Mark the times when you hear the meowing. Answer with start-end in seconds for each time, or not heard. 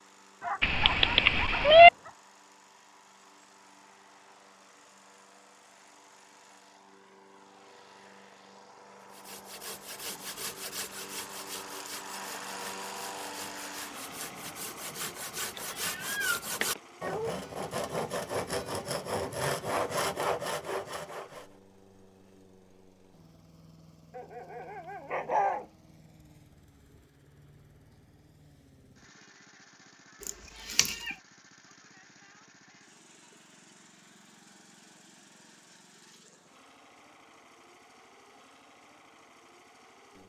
0.6-1.9, 15.6-16.8, 30.2-31.1.